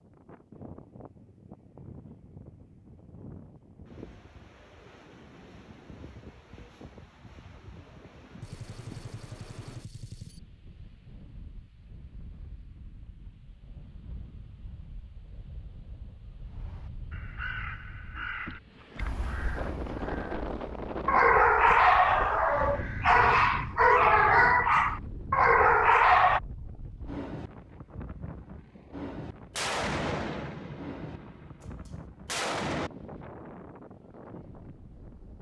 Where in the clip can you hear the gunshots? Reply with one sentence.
You can hear the gunshots from 8.4 to 10.4 s and from 29.6 to 32.9 s.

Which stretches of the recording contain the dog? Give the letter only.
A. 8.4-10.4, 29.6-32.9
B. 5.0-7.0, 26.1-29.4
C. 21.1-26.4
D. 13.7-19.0
C.